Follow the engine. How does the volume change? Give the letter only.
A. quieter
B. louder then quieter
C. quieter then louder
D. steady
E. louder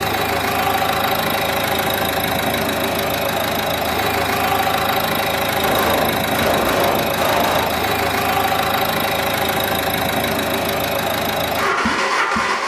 D.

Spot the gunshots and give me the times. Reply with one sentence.
You can hear the gunshots from 5.6 to 7.7 s.